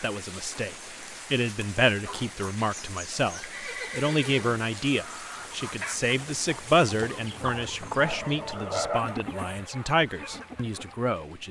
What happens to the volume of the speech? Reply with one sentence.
The volume of the speech stays about the same.